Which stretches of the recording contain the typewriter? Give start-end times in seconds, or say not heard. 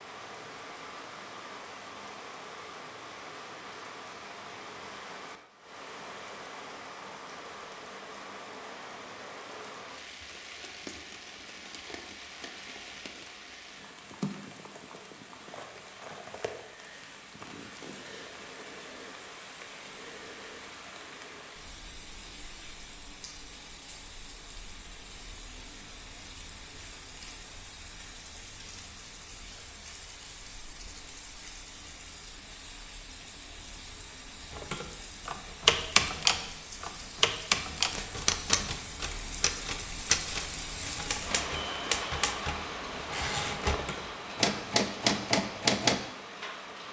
34.5-46.0.